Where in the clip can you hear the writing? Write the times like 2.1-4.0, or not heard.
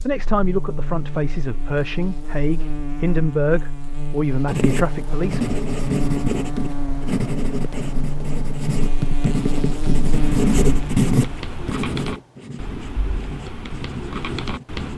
4.5-14.9.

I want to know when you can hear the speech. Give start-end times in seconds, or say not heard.
0.0-5.6.